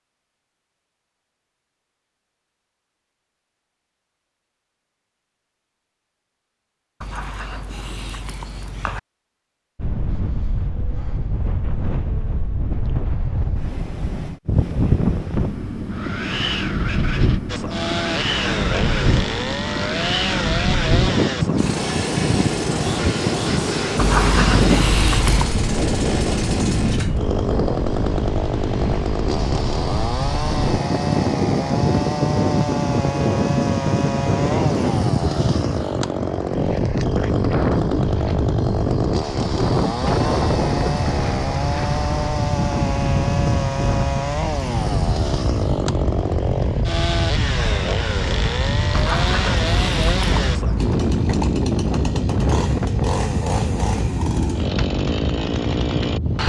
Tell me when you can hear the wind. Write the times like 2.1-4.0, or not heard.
9.8-56.4.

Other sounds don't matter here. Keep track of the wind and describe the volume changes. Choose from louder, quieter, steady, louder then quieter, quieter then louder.
steady.